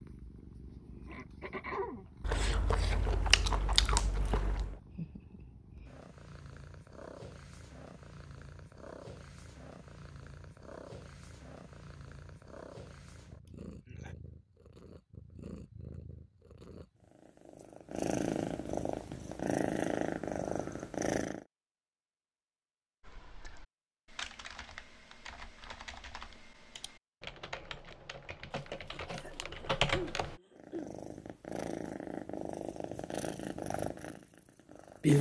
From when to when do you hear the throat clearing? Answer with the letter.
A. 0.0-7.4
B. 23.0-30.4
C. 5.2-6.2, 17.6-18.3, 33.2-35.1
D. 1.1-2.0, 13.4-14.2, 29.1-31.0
D.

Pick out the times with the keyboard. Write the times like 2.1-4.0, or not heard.
23.0-30.4.